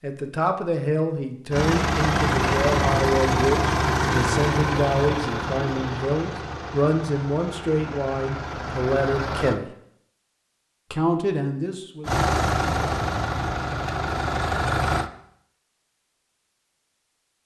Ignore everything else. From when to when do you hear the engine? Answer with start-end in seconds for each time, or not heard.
1.5-9.6, 12.1-15.1.